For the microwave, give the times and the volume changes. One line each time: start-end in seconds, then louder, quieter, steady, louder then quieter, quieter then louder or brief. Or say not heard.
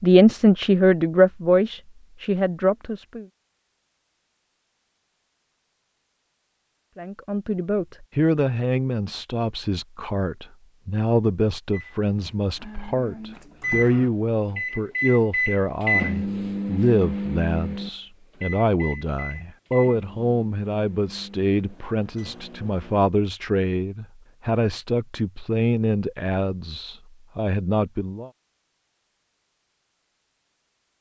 11.7-23.1 louder then quieter.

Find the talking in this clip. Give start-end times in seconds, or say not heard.
0.0-3.2, 7.0-28.3.